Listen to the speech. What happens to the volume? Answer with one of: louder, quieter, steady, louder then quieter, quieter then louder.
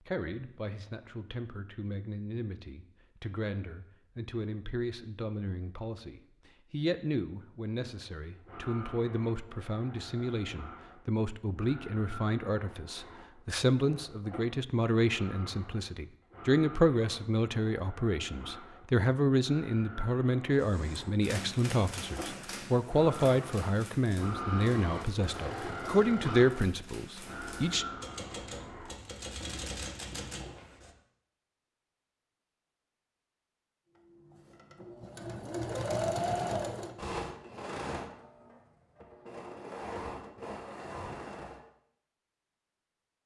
louder.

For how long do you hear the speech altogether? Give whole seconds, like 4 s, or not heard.
28 s.